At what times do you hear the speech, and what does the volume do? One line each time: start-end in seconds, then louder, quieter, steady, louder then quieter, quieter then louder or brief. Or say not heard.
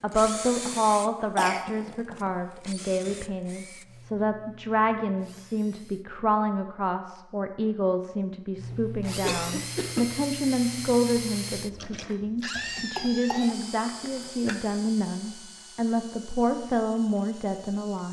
0.0-18.0 steady.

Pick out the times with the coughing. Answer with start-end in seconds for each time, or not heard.
1.4-1.9, 9.2-10.1, 12.6-14.6.